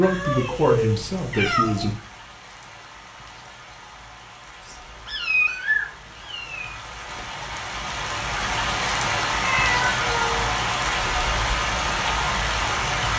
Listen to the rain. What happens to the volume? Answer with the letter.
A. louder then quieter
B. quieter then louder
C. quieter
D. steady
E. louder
E.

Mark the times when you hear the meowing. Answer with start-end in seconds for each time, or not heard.
0.0-1.9, 4.6-6.7, 9.4-10.5.